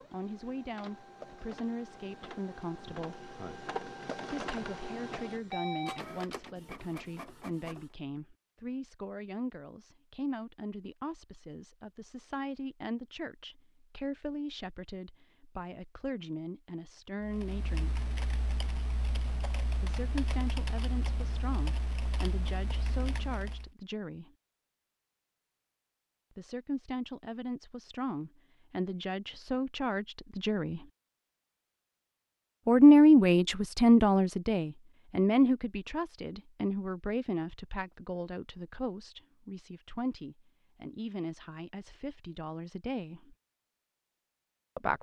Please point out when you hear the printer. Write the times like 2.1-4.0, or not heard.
0.0-8.0.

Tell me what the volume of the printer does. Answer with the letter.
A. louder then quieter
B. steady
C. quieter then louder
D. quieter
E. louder
A.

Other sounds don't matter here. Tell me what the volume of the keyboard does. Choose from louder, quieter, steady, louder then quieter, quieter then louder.
steady.